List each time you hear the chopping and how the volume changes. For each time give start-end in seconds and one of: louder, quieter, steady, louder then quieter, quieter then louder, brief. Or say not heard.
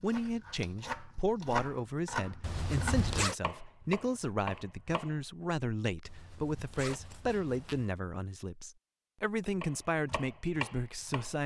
0.1-5.2 louder then quieter
9.6-11.4 brief.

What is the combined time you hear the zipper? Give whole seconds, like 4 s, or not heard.
3 s.